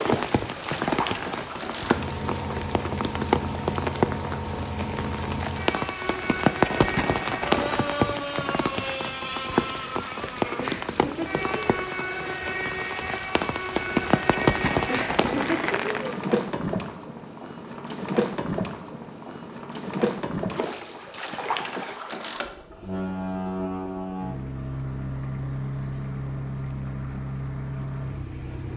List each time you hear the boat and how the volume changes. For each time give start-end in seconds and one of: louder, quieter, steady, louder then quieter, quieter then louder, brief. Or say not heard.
0.0-28.7 steady.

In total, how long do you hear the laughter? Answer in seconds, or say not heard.
2 s.